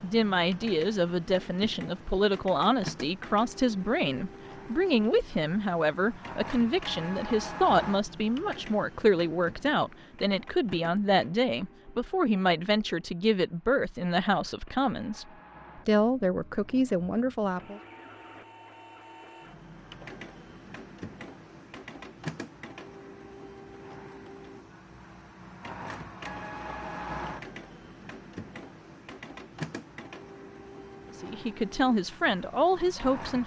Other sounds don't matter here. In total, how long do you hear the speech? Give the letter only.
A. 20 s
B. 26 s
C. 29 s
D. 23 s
A.